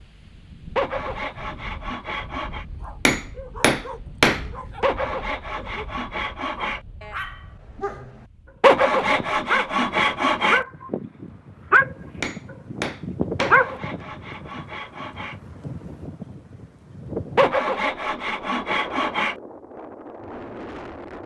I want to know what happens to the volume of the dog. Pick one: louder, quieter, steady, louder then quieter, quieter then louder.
louder.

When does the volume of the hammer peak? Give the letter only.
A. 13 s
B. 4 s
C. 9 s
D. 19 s
B.